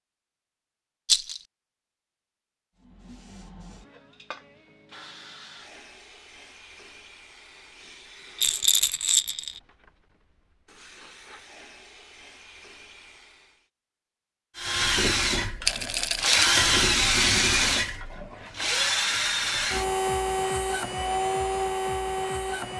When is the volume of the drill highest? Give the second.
17 s.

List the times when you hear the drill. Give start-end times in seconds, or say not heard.
14.6-22.7.